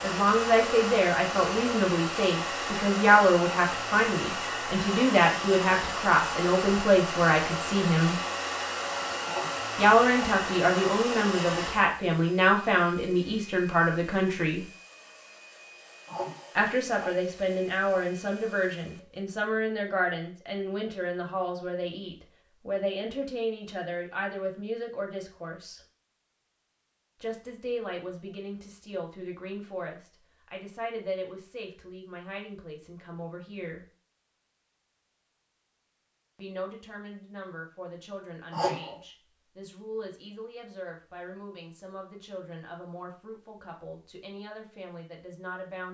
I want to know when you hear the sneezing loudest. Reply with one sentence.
The loudest moment of the sneezing is at 39 seconds.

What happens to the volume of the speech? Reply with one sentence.
The loudness of the speech goes down.